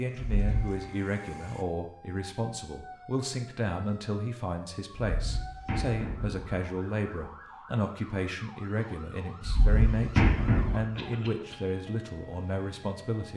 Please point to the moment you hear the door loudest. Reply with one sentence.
The volume of the door peaks at 10 seconds.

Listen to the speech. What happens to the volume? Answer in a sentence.
The loudness of the speech stays about the same.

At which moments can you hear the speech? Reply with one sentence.
You can hear the speech from 0.0 to 13.3 s.